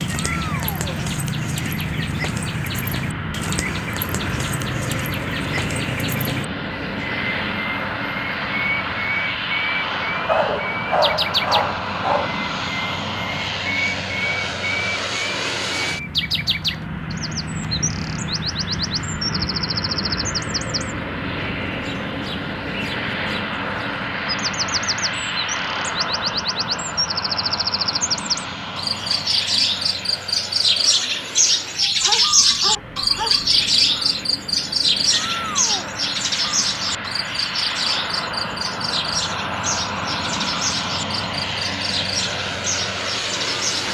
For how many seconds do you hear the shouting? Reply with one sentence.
The shouting can be heard for 2 seconds in total.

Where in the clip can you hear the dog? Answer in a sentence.
You can hear the dog from 10.2 to 12.3 s and from 32.0 to 33.5 s.